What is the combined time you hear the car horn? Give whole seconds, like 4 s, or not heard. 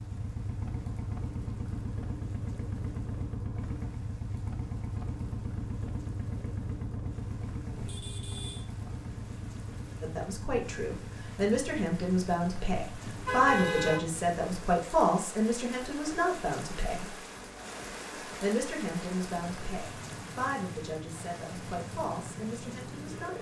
2 s.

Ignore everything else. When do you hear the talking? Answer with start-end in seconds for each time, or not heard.
10.0-17.1, 18.2-23.3.